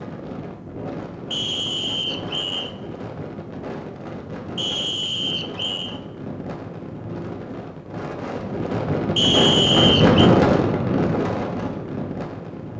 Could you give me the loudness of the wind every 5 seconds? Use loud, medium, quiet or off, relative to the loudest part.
quiet, medium, loud.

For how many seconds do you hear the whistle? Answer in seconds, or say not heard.
4 s.